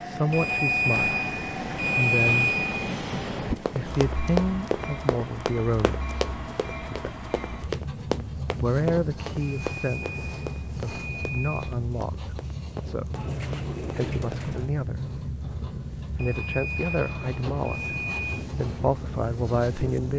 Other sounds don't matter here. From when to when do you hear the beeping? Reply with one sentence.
You can hear the beeping from 0.3 to 3.0 s, from 9.4 to 11.6 s and from 16.1 to 18.2 s.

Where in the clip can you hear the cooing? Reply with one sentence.
You can hear the cooing from 13.2 to 14.8 s.